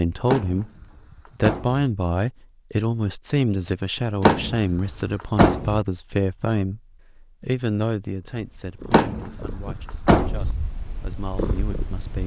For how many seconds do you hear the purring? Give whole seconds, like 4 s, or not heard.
4 s.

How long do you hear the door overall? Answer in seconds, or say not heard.
5 s.